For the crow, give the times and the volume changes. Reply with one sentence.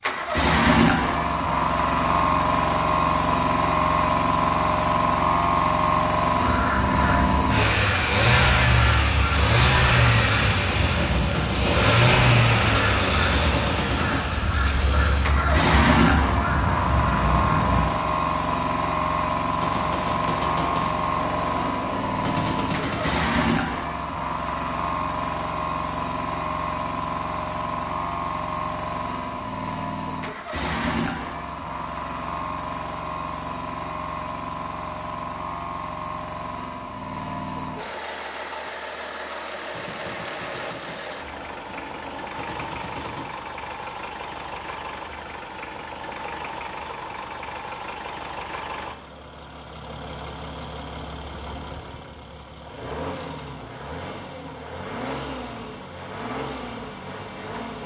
You can hear the crow from 6.4 to 17.9 s, at a steady volume.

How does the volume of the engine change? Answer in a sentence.
The loudness of the engine goes down.